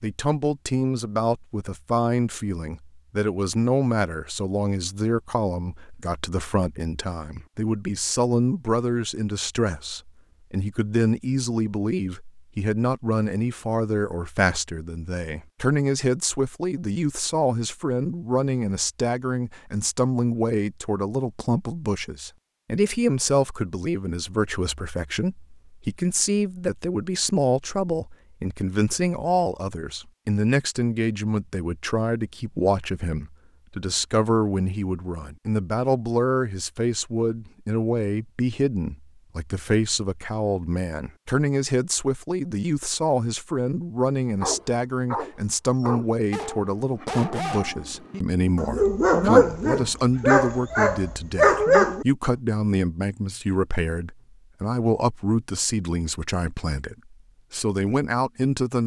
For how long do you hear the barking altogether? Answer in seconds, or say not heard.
8 s.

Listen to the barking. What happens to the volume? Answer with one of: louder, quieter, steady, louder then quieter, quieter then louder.
louder.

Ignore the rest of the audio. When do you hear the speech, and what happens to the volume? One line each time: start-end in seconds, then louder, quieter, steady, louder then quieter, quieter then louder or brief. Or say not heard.
0.0-58.8 steady.